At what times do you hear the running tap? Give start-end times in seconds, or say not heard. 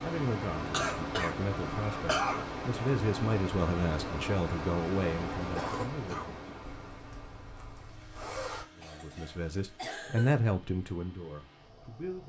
not heard.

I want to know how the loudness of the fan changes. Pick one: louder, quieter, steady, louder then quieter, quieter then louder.
quieter.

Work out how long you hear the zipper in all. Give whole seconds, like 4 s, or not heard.
2 s.